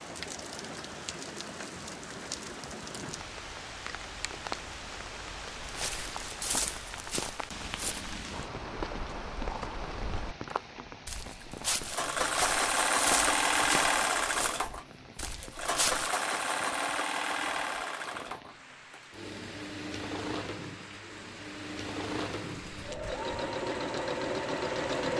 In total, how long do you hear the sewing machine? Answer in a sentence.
The sewing machine can be heard for 13 seconds in total.